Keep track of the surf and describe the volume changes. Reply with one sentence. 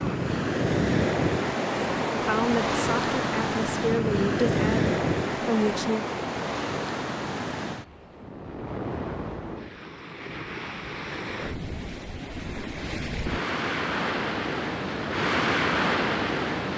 The loudness of the surf goes down, then up.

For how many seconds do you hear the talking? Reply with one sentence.
The talking can be heard for 4 seconds in total.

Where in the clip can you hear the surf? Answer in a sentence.
The surf can be heard from 0.0 to 16.7 s.